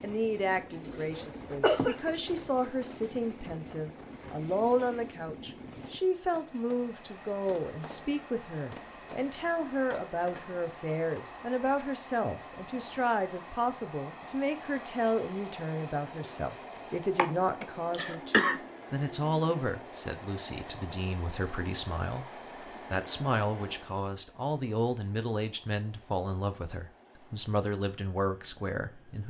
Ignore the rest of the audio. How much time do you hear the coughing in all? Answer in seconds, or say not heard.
3 s.